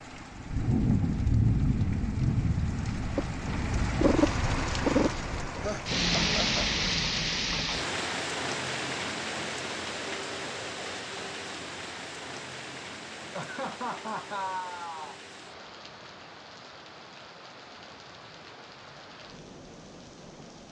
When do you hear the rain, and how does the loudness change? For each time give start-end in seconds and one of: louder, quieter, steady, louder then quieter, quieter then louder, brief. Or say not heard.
0.0-20.6 quieter.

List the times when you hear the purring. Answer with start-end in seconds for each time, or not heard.
3.0-6.0.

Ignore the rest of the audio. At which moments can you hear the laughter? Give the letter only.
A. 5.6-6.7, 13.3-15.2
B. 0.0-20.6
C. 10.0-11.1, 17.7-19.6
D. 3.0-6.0
A.